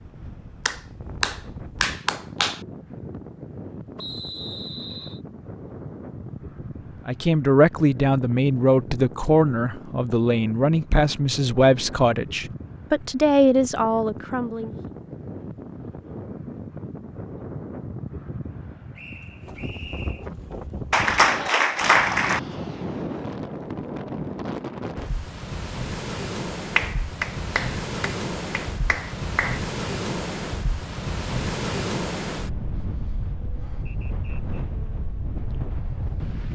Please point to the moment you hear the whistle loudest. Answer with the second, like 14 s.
4 s.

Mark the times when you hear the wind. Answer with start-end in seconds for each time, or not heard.
0.0-36.4.